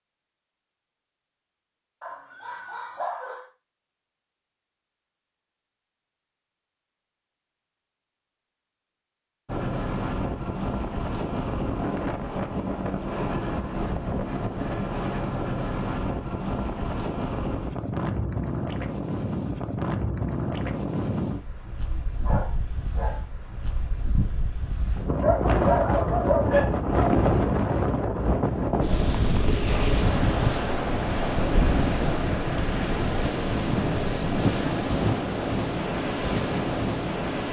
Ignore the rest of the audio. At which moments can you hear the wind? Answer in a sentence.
You can hear the wind from 9.4 to 37.4 s.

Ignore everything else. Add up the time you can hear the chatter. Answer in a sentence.
You can't hear the chatter here.